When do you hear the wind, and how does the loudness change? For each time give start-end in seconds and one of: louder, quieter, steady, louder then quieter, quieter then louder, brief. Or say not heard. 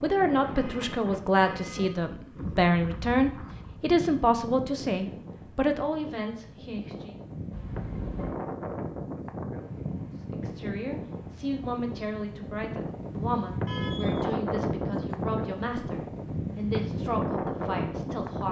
0.0-18.4 louder.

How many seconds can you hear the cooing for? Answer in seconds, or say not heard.
not heard.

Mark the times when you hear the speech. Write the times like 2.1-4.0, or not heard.
0.0-7.2, 10.3-18.4.